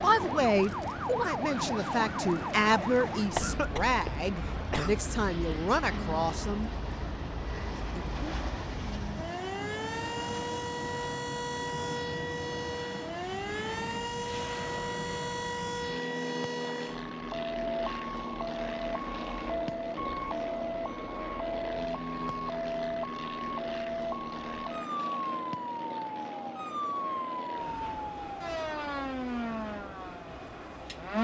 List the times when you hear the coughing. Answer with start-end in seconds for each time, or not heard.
3.4-5.0.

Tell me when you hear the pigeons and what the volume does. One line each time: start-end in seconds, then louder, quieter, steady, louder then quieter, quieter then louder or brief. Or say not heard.
not heard.